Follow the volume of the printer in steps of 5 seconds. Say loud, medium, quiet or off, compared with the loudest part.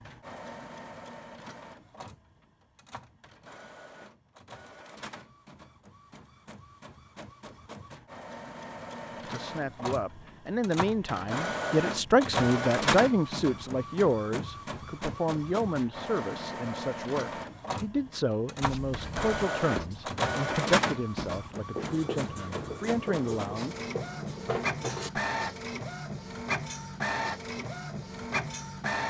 quiet, medium, loud, loud, loud, loud.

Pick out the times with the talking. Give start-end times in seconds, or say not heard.
9.2-23.8.